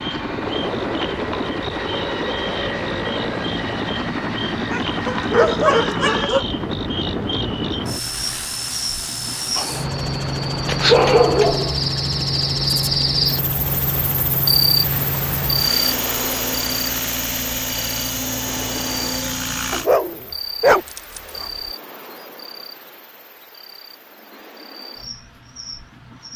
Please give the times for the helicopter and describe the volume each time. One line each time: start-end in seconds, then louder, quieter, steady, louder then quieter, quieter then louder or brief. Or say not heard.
0.0-19.9 steady.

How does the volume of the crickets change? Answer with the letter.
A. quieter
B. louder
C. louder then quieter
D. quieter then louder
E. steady
C.